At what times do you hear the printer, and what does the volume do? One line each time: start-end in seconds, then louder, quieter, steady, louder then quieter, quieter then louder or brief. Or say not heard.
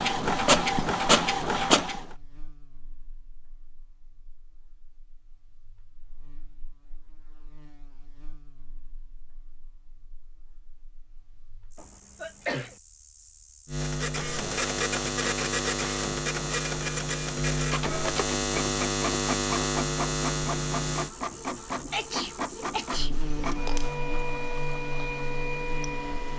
0.0-2.0 brief
13.8-26.3 steady.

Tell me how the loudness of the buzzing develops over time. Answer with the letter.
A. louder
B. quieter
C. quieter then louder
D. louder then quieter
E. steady
D.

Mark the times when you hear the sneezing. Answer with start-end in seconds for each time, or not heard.
1.5-2.5, 11.8-12.8, 21.9-23.1.